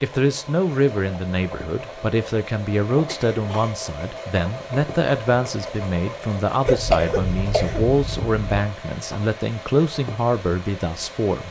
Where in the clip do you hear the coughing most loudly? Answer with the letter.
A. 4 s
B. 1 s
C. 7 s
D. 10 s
C.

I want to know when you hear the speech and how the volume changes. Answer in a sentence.
You can hear the speech from 0.0 to 11.4 s, at a steady volume.